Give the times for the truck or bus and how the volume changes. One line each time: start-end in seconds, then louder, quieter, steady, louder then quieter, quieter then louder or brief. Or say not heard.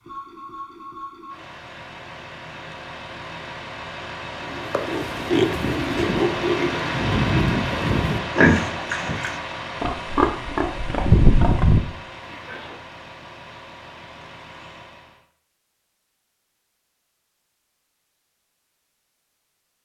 0.0-15.2 louder then quieter.